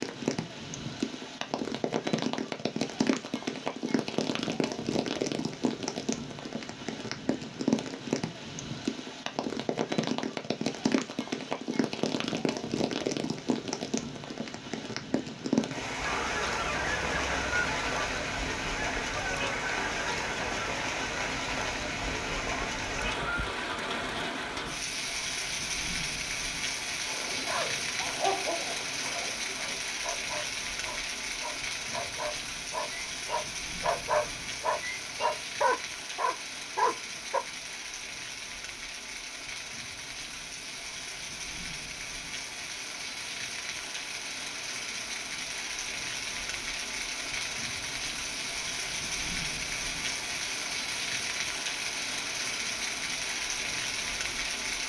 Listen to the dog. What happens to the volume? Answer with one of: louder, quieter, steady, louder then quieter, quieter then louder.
quieter then louder.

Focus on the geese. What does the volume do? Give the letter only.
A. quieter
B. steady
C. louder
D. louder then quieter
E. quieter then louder
A.